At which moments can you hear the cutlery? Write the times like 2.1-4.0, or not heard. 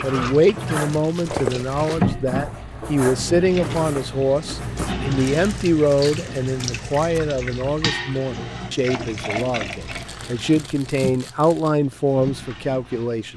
0.0-5.0.